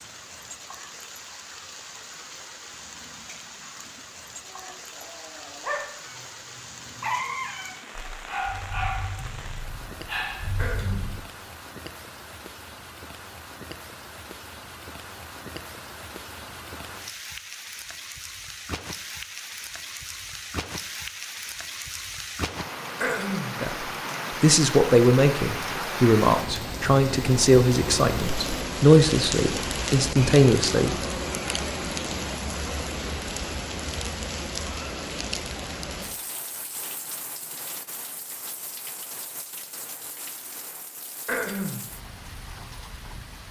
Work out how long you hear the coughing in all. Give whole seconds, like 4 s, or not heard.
2 s.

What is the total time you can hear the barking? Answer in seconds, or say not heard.
7 s.